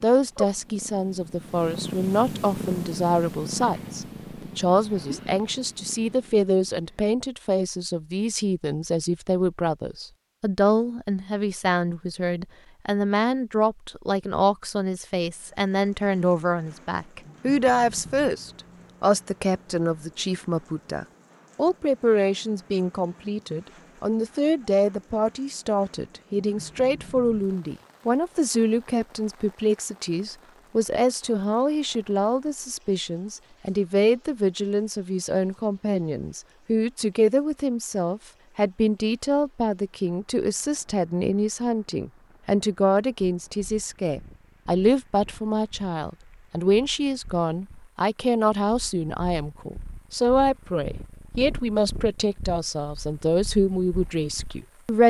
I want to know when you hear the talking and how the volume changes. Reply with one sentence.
You can hear the talking from 0.0 to 55.0 s, at a steady volume.